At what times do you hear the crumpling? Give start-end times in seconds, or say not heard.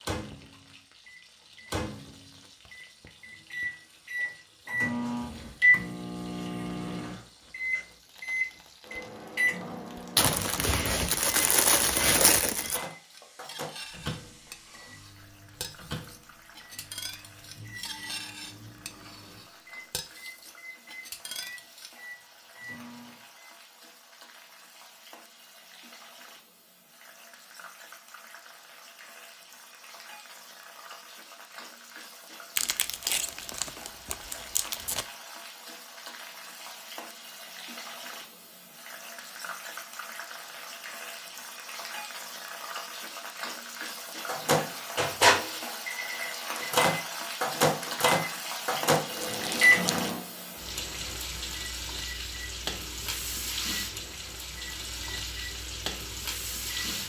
10.2-12.8, 32.5-35.0, 49.1-50.1.